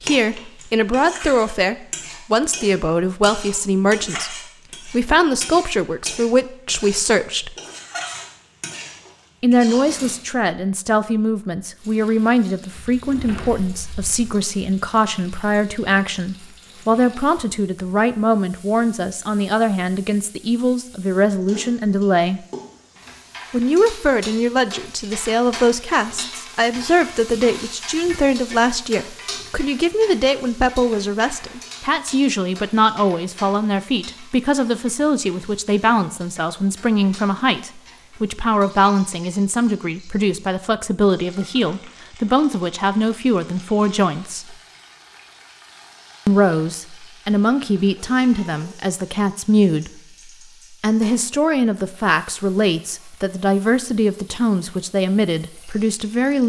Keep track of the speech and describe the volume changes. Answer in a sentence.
The loudness of the speech stays about the same.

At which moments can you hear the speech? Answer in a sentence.
You can hear the speech from 0.0 to 7.5 s, from 9.4 to 22.4 s, from 23.5 to 44.5 s, from 46.2 to 50.0 s and from 50.8 to 56.4 s.